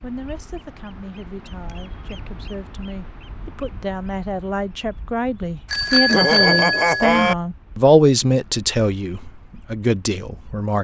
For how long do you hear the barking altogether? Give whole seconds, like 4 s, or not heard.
not heard.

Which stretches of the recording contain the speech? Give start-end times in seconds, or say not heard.
0.0-10.7.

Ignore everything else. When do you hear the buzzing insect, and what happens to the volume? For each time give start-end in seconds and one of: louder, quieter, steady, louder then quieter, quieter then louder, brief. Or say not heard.
not heard.